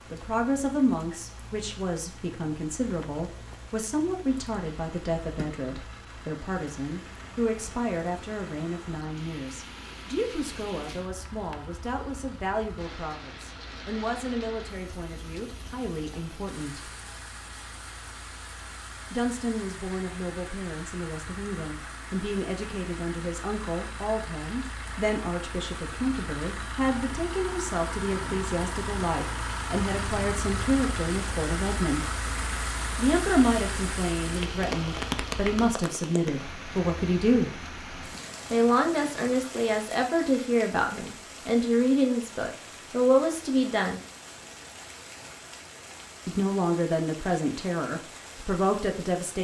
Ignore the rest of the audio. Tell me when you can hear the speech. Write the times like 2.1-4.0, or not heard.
0.1-16.9, 19.1-32.1, 33.0-37.6, 38.5-44.0, 46.2-49.3.